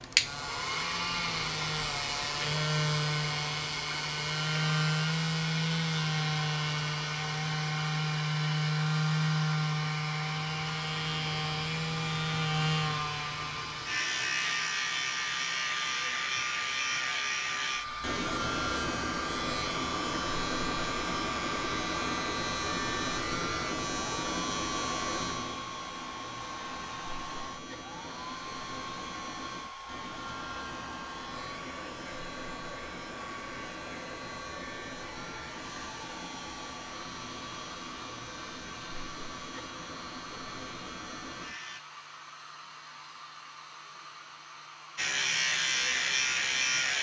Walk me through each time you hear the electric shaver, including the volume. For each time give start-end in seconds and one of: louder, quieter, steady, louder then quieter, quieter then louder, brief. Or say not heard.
0.0-41.8 quieter
45.0-46.9 brief.